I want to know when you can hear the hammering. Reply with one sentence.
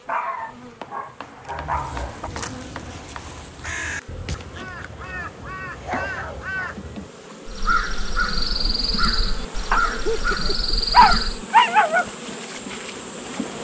The hammering can be heard from 0.8 to 3.5 s.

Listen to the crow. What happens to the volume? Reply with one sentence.
The loudness of the crow goes up.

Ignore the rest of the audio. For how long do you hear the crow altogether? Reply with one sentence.
You can hear the crow for 10 seconds altogether.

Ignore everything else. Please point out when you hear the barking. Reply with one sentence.
You can hear the barking from 0.1 to 2.3 s, from 5.8 to 6.8 s and from 9.7 to 12.1 s.